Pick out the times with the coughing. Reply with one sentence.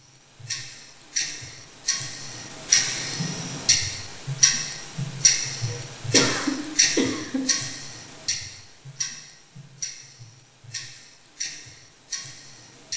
The coughing can be heard from 5.7 to 7.5 s.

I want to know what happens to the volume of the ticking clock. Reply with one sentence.
The volume of the ticking clock goes down.